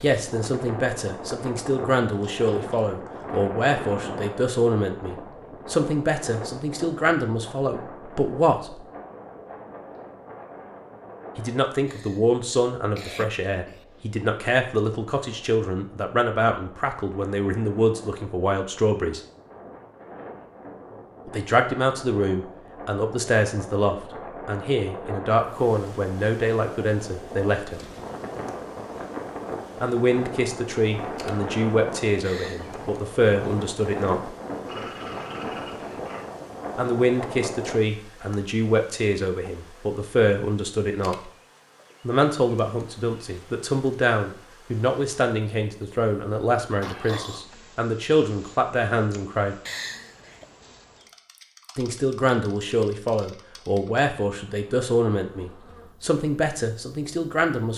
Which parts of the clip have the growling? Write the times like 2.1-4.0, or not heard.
2.1-3.3, 34.6-36.3, 46.8-47.5.